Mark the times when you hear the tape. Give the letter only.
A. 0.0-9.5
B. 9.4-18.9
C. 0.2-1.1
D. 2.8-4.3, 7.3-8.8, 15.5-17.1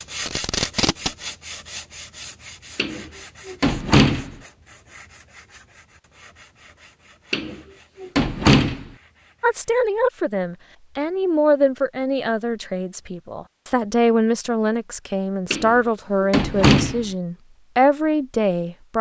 C.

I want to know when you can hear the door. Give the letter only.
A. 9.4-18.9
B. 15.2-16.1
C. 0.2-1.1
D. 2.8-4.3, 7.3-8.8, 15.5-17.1
D.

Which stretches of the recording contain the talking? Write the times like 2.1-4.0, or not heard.
9.4-18.9.